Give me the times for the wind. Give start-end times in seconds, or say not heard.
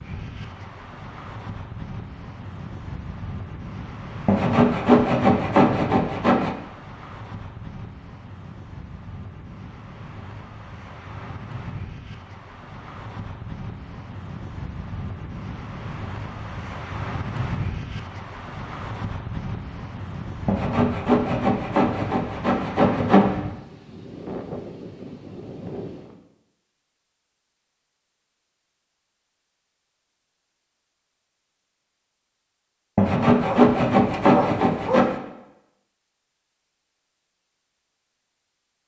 0.0-26.2.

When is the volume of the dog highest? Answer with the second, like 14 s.
35 s.